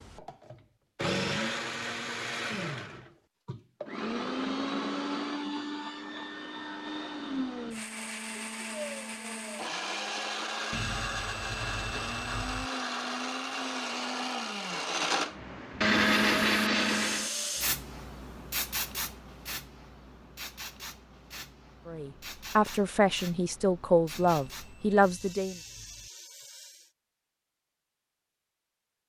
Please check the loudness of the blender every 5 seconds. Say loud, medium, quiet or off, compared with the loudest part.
medium, medium, medium, loud, off, off.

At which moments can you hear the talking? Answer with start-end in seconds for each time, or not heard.
21.9-25.6.